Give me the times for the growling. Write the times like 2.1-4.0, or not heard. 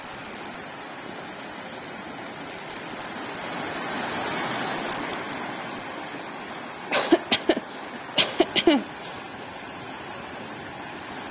not heard.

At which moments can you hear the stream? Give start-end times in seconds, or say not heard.
0.0-11.2.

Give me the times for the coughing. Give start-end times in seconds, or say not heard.
6.9-9.1.